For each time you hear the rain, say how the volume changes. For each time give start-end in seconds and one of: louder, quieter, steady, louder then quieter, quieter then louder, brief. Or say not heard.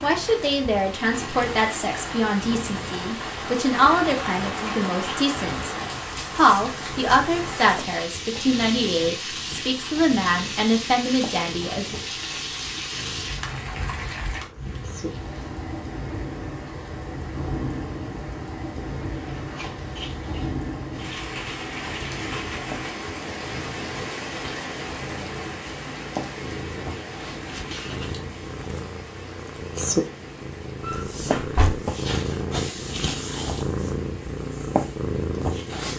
0.0-35.8 quieter.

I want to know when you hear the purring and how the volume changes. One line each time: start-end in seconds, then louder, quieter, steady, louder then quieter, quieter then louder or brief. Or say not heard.
0.0-35.9 louder.